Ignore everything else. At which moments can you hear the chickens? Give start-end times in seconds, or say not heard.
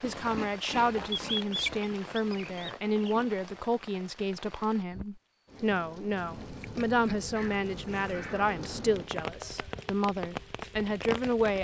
1.1-3.2, 7.3-8.6.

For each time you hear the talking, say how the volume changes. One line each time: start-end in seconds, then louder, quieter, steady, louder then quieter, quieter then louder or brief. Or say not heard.
0.0-11.5 steady.